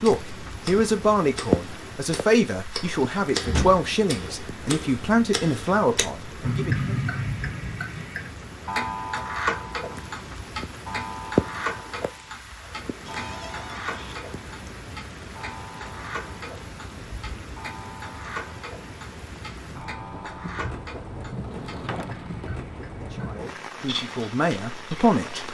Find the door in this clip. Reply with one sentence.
You can hear the door from 3.5 to 4.3 s, from 13.1 to 14.2 s and from 21.4 to 22.3 s.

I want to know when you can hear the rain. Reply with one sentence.
The rain can be heard from 0.0 to 25.4 s.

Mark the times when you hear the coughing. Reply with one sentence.
The coughing can't be heard in this clip.